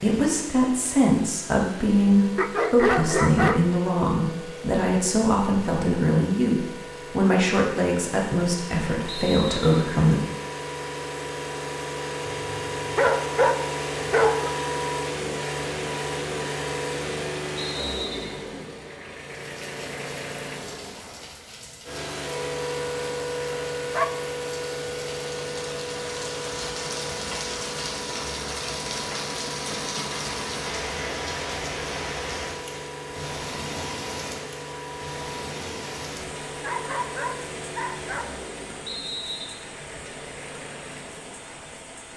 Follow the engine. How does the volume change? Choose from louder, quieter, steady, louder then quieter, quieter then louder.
louder then quieter.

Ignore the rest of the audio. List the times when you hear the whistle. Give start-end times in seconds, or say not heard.
9.1-9.9, 17.6-18.4, 38.9-39.6.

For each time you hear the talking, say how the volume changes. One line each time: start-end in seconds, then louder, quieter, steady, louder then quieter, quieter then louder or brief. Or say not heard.
0.0-10.2 steady.